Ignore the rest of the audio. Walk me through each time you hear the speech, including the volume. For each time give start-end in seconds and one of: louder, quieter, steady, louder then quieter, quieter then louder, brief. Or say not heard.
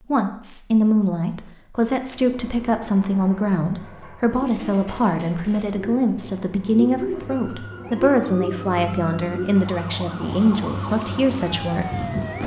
0.1-12.4 steady.